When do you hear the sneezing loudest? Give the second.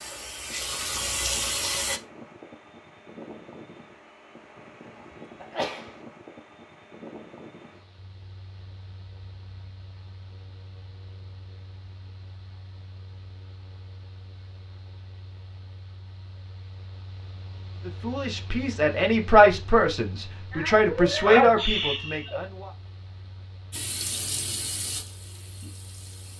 21 s.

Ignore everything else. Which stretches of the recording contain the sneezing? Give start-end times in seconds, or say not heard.
5.4-6.0, 20.5-22.4.